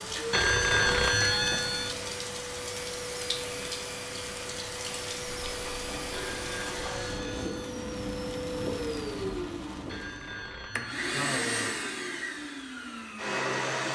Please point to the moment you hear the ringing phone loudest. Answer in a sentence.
The volume of the ringing phone peaks at 1 second.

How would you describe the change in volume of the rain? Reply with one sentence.
The volume of the rain stays about the same.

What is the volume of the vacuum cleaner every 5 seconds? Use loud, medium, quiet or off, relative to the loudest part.
medium, medium, loud.